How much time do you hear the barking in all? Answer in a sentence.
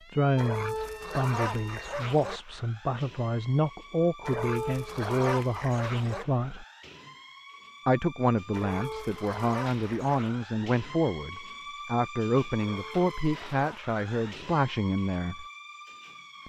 The barking can be heard for 8 seconds in total.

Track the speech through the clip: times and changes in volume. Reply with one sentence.
You can hear the speech from 0.1 to 6.7 s, at a steady volume; and from 7.8 to 15.4 s, at a steady volume.